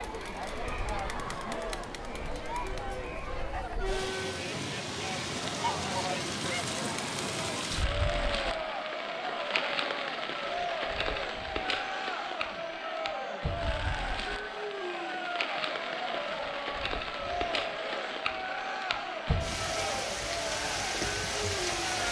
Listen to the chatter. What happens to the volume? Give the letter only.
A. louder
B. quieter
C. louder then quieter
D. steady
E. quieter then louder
D.